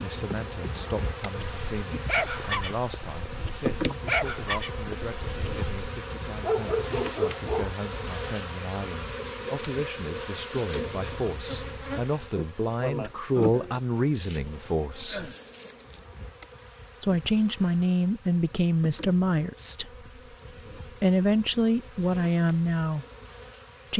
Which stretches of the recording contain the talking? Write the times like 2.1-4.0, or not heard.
0.0-15.3, 17.0-19.9, 21.0-23.1.